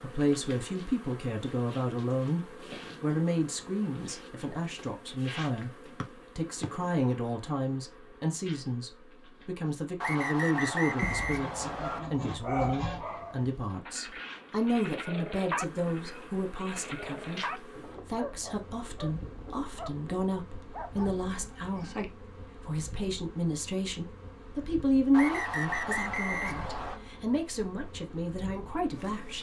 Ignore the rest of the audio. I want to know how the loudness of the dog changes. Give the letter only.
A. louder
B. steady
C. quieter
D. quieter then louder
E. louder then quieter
C.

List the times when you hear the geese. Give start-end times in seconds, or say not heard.
11.0-13.1, 20.9-22.1.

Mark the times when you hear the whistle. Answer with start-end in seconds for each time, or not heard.
6.0-6.7, 10.0-12.0, 25.1-27.0.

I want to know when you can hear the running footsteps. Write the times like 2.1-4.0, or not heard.
not heard.